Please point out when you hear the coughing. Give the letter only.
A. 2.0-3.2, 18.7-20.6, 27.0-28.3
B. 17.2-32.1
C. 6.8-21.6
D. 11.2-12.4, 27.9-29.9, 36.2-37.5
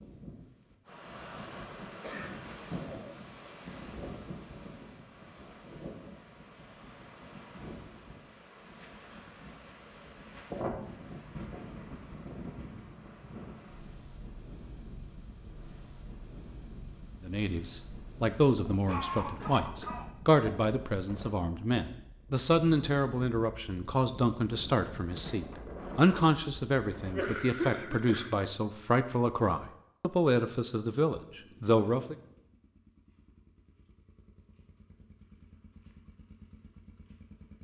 A.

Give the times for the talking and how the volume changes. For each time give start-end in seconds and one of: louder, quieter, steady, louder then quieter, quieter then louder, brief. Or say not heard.
17.2-32.1 steady.